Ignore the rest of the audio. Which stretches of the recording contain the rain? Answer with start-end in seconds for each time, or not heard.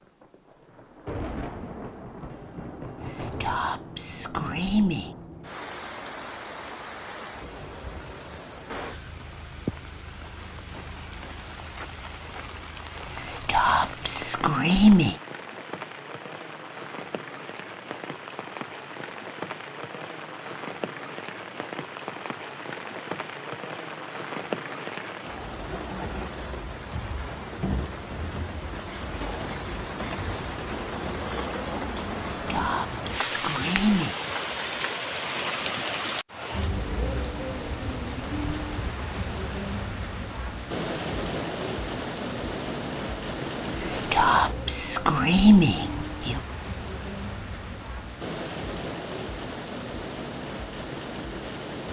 0.0-51.8.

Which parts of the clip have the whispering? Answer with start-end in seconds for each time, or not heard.
3.0-5.1, 13.1-15.2, 32.1-34.1, 43.7-46.4.